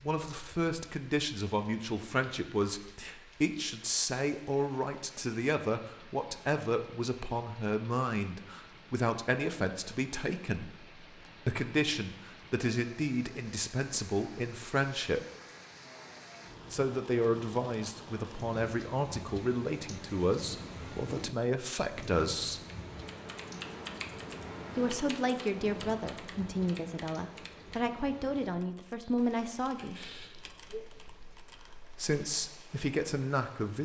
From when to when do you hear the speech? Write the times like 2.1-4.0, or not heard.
0.0-15.2, 16.7-22.6, 24.8-30.0, 31.1-33.8.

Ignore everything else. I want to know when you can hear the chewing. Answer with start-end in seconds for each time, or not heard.
not heard.